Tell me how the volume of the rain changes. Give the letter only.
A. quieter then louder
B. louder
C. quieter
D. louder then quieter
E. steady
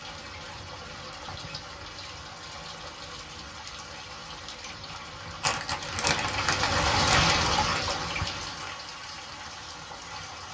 D.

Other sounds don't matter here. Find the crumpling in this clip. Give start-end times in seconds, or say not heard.
5.4-7.2.